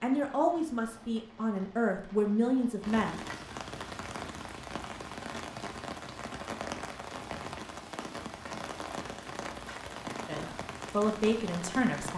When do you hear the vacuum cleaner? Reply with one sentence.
You can't hear the vacuum cleaner here.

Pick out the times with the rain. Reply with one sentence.
You can hear the rain from 0.0 to 12.1 s.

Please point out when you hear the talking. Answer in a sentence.
The talking can be heard from 0.0 to 3.2 s and from 10.2 to 12.1 s.